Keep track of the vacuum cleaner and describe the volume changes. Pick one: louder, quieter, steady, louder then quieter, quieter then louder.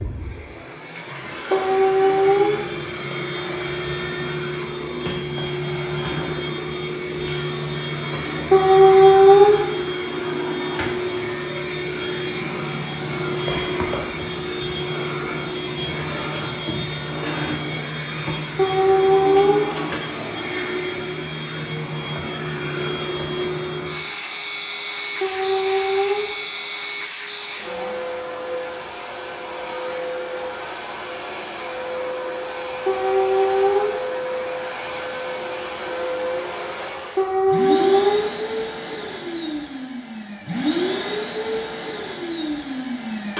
steady.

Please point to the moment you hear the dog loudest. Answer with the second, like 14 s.
9 s.